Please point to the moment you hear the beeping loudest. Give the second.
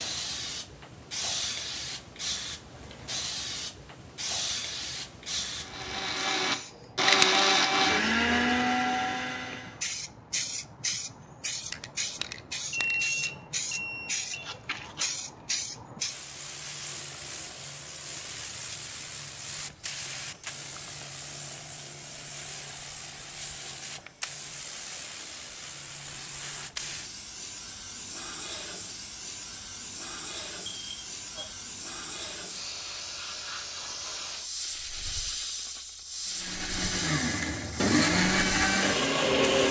13 s.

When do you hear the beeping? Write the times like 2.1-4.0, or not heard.
12.7-14.5, 30.6-31.4.